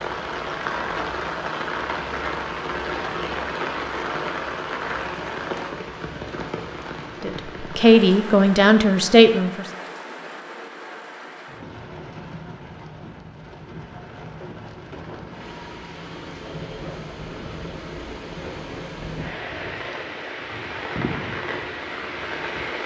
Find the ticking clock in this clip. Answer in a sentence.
The ticking clock can't be heard in this clip.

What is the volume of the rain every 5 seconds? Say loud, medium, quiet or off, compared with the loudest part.
loud, medium, medium, medium, loud.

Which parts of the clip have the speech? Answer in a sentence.
You can hear the speech from 7.2 to 9.7 s.